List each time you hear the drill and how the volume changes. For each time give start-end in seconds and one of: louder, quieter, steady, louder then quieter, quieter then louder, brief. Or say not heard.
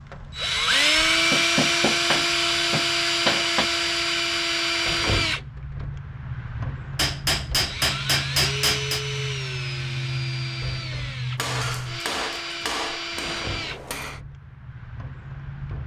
0.0-15.8 quieter.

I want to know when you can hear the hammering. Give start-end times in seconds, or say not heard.
1.3-3.6, 7.0-9.1, 11.3-14.2.